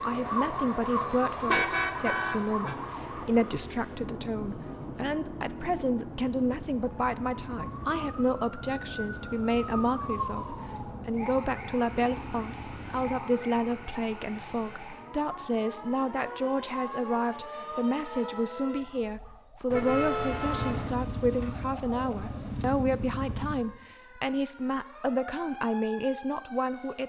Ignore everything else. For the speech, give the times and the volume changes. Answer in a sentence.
You can hear the speech from 0.0 to 27.0 s, at a steady volume.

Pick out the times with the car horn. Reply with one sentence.
The car horn can be heard from 1.1 to 2.8 s and from 19.7 to 20.9 s.